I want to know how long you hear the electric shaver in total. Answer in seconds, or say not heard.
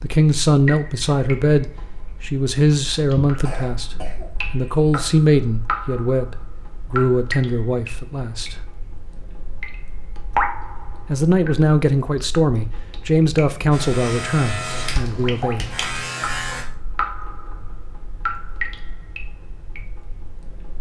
3 s.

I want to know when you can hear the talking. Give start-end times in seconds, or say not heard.
0.0-8.6, 11.1-15.7.